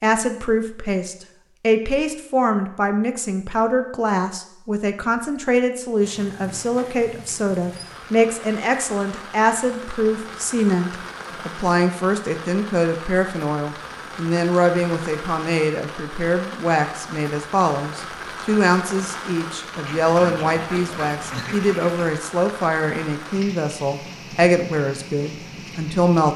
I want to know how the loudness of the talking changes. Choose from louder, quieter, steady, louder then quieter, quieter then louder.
steady.